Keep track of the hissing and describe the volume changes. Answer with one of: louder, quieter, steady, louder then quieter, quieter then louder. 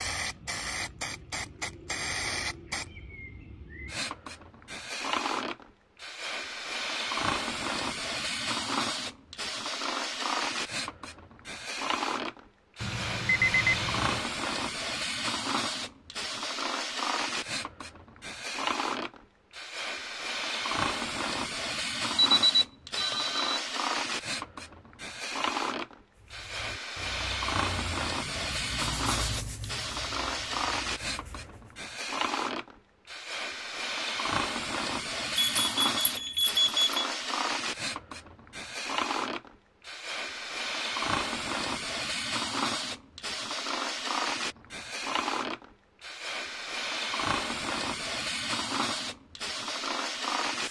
steady.